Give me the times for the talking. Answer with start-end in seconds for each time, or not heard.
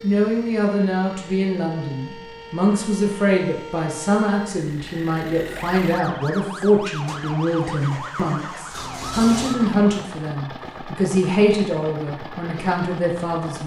0.0-13.6.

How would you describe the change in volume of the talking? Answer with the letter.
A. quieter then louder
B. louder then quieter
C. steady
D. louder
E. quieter
C.